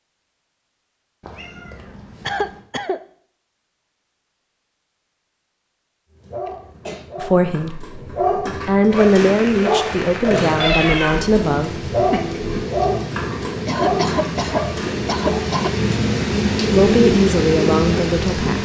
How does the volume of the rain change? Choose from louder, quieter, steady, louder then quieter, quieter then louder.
louder.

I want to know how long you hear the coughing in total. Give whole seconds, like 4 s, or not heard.
4 s.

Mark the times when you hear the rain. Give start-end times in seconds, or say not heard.
8.8-18.5.